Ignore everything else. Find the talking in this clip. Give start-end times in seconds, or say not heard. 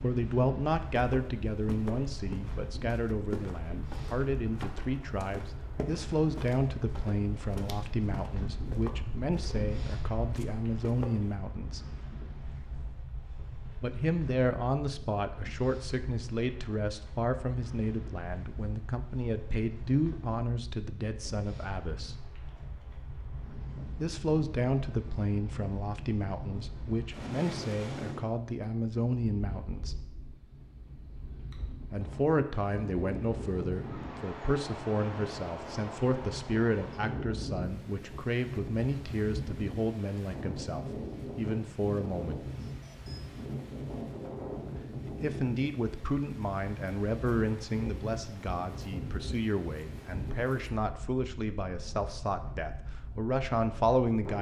0.0-11.8, 13.8-22.2, 23.9-29.9, 31.9-42.5, 45.0-54.3.